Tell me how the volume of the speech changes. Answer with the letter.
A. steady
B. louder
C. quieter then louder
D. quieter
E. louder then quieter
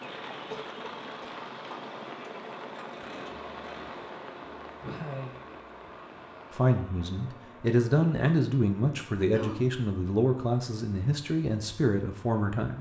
A.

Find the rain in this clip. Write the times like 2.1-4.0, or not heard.
0.0-6.8.